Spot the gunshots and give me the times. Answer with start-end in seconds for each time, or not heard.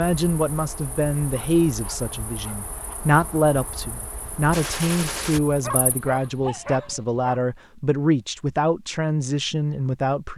4.5-5.4.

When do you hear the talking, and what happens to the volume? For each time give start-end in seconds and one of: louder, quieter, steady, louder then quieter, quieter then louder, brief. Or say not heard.
0.0-10.3 steady.